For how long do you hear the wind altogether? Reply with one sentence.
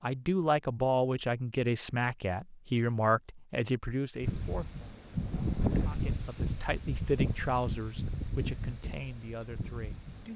The wind can be heard for 6 seconds in total.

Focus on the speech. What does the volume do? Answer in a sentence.
The volume of the speech goes down.